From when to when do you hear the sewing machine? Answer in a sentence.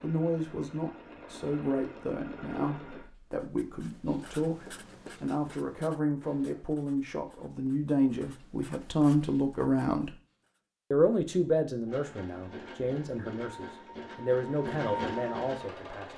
The sewing machine can be heard from 0.0 to 3.1 s and from 11.8 to 16.1 s.